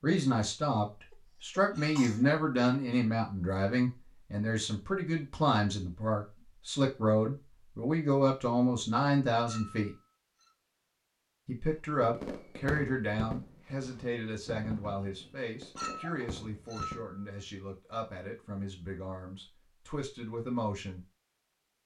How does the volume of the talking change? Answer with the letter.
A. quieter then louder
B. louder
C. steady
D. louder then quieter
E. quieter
E.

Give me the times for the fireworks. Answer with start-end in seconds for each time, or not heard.
12.0-17.5.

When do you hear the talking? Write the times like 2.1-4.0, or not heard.
0.0-9.9, 11.4-21.1.